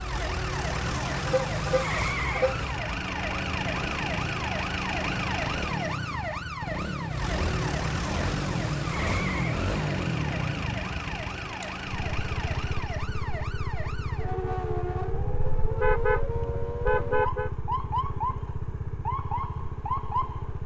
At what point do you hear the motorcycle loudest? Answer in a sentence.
The loudest moment of the motorcycle is at 10 seconds.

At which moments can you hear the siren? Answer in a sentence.
The siren can be heard from 0.0 to 20.6 s.